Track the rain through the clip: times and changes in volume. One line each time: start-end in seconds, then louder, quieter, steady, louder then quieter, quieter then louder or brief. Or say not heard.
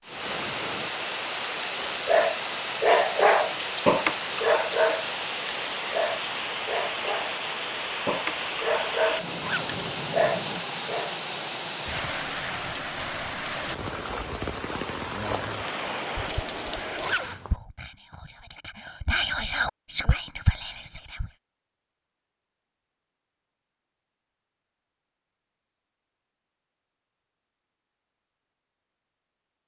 0.0-17.2 steady.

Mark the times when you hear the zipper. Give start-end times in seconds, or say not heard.
9.4-9.8, 17.0-17.6.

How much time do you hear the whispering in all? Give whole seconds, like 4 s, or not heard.
5 s.